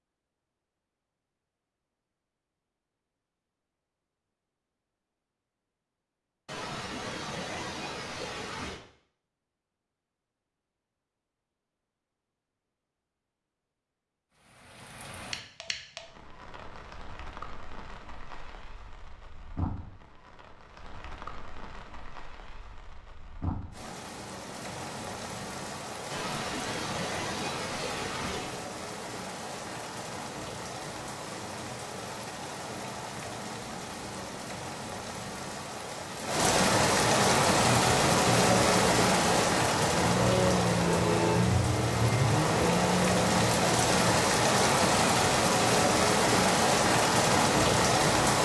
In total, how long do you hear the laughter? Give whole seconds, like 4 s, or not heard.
5 s.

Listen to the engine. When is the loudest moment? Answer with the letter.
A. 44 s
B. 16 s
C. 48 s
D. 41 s
D.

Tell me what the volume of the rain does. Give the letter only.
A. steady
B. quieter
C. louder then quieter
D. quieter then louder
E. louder
E.